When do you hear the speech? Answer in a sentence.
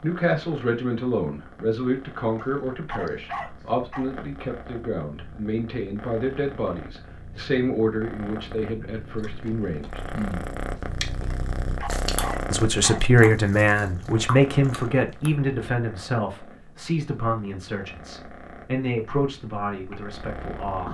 You can hear the speech from 0.0 to 10.0 s and from 12.5 to 20.8 s.